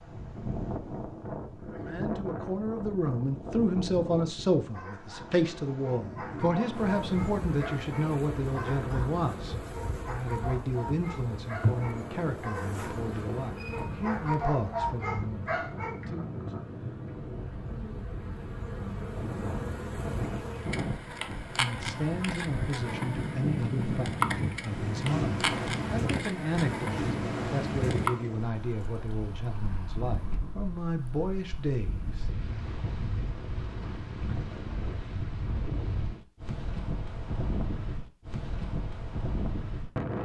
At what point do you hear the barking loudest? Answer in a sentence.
The volume of the barking peaks at 15 seconds.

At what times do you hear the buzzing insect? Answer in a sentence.
The buzzing insect can be heard from 6.7 to 28.1 s.